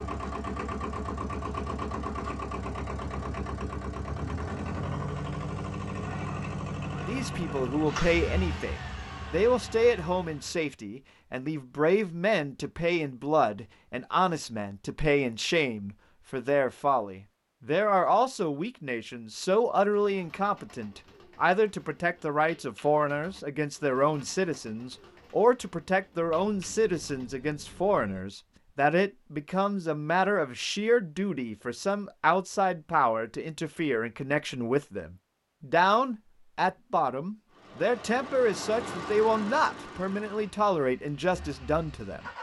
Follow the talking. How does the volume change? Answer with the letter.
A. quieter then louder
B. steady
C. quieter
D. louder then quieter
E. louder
B.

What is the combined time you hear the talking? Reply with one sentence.
The talking can be heard for 35 seconds in total.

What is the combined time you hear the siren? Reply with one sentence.
The siren can't be heard in this clip.